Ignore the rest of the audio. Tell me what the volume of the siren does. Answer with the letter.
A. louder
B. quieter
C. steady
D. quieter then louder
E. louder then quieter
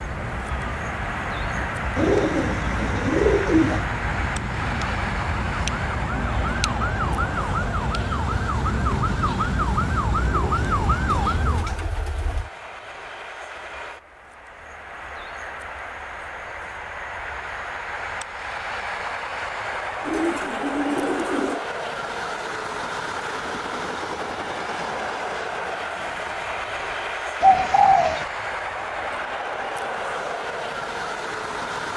A.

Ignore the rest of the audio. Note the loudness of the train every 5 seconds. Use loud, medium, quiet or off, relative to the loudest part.
loud, loud, medium, loud, loud, loud, loud.